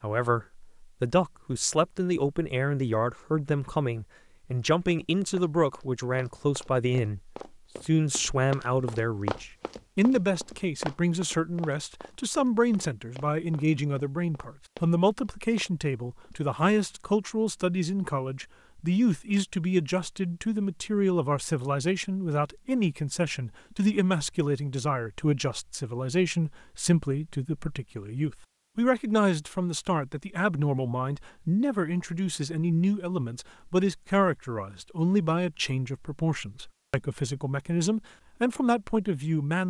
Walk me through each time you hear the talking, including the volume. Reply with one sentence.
The talking can be heard from 0.0 to 39.6 s, at a steady volume.